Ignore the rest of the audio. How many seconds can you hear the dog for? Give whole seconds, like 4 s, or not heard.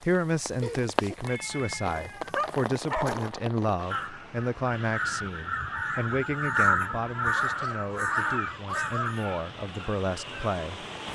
3 s.